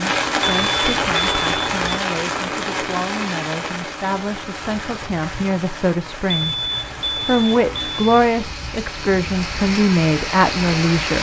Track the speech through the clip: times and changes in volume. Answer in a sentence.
The speech can be heard from 0.0 to 11.1 s, getting louder.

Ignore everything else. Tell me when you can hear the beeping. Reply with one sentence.
You can hear the beeping from 0.4 to 2.0 s and from 6.2 to 8.2 s.